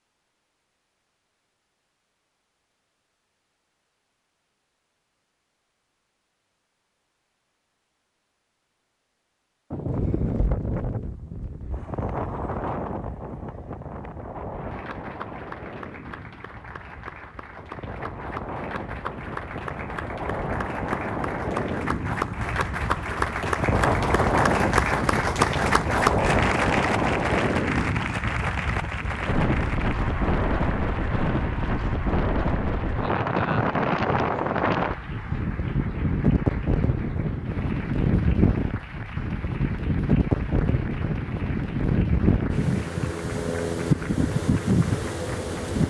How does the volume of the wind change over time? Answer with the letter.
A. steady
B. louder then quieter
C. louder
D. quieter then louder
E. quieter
C.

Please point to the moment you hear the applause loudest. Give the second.
26 s.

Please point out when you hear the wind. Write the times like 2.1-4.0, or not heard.
9.7-45.8.